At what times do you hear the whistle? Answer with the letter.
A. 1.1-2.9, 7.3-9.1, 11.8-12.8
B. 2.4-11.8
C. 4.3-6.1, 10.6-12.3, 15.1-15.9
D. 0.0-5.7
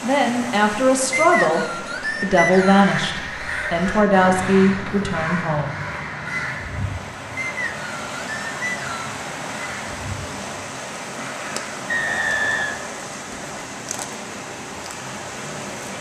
A.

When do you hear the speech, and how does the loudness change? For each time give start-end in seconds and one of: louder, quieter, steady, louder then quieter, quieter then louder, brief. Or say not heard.
0.0-5.7 steady.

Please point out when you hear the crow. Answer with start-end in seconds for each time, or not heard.
2.4-11.8.